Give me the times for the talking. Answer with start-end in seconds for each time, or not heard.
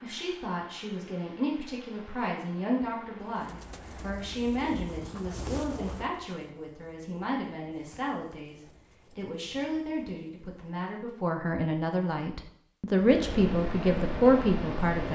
0.0-15.0.